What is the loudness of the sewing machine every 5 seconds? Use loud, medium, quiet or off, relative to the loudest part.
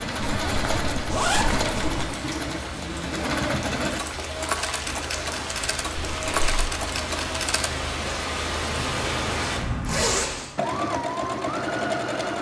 loud, medium, loud.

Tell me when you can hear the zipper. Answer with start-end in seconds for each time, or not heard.
0.1-2.0, 6.0-6.7, 9.5-10.3.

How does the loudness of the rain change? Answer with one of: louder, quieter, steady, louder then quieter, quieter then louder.
louder.